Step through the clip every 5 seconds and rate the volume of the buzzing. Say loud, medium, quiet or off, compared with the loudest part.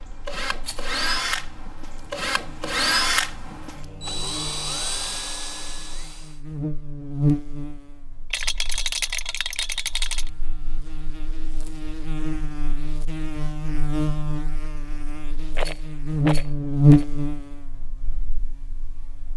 quiet, medium, medium, loud.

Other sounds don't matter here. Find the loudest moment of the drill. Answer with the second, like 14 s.
3 s.